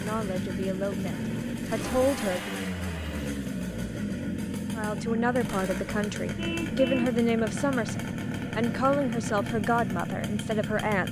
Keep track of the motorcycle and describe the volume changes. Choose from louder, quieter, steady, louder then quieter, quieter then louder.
steady.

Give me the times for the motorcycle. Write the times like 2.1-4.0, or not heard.
0.0-11.0.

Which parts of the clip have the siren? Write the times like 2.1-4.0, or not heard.
not heard.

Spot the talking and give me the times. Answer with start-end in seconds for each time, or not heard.
0.0-2.5, 4.8-11.0.